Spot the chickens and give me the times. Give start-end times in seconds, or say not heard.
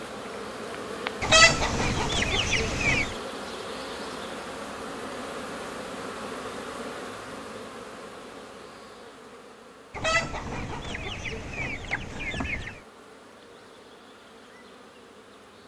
1.2-3.1, 9.9-12.8.